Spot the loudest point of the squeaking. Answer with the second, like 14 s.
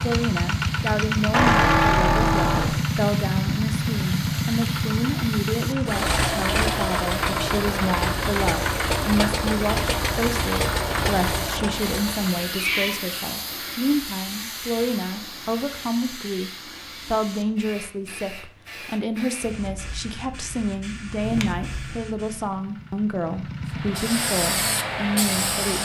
2 s.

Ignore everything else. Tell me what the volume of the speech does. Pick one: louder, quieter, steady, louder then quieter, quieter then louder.
steady.